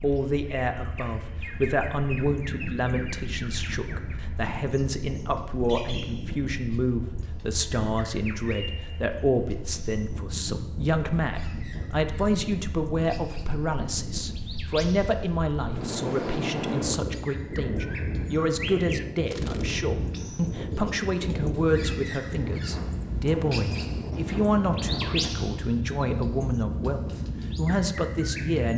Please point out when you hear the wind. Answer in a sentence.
You can hear the wind from 0.0 to 28.7 s.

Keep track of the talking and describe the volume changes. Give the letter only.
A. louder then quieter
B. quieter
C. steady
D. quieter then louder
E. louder
C.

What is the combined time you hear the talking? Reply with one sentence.
The talking can be heard for 29 seconds in total.